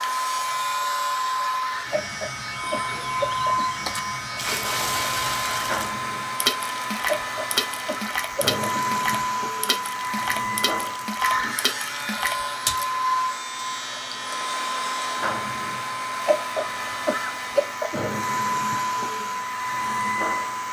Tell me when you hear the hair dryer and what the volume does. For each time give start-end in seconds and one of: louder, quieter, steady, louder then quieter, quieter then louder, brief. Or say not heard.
0.0-20.6 steady.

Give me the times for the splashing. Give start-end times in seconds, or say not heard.
3.9-12.8.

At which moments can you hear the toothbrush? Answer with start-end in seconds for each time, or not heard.
not heard.